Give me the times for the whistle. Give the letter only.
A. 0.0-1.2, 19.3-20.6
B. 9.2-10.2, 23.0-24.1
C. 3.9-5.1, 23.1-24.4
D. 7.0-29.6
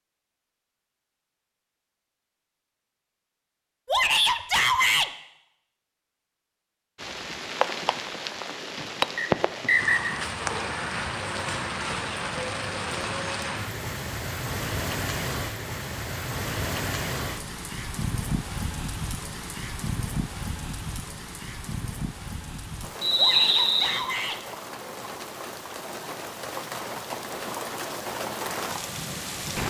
B.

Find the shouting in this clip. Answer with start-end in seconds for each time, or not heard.
3.9-5.1, 23.1-24.4.